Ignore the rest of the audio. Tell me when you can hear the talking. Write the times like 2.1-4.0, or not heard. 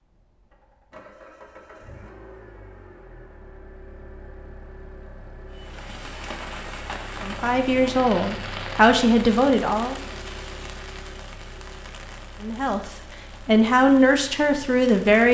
7.2-9.9, 12.4-15.2.